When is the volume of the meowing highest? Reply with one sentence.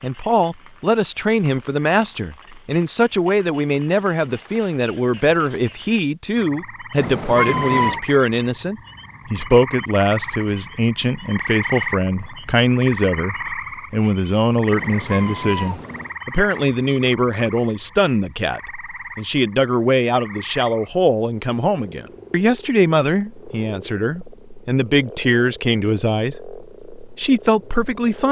The volume of the meowing peaks at 8 seconds.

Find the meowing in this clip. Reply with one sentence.
You can hear the meowing from 7.0 to 8.0 s and from 14.7 to 16.1 s.